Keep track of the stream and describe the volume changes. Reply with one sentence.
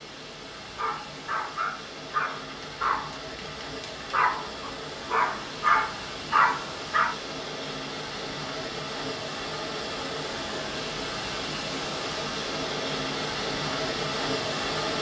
The loudness of the stream goes up.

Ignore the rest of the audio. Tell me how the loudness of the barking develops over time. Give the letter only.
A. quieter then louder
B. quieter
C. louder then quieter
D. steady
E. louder
E.